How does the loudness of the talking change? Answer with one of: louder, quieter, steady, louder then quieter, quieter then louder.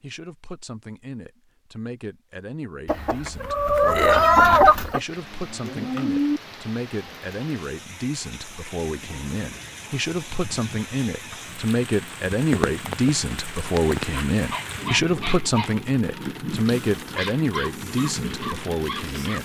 louder.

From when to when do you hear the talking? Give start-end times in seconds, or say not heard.
0.0-19.4.